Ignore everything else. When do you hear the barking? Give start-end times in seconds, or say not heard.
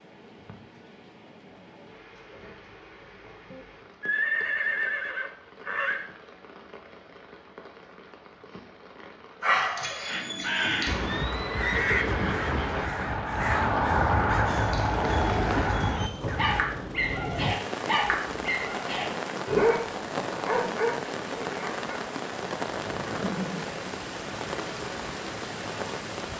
9.4-11.2, 14.5-21.9.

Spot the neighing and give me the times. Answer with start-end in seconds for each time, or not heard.
3.5-6.0, 10.8-12.9, 23.1-23.8.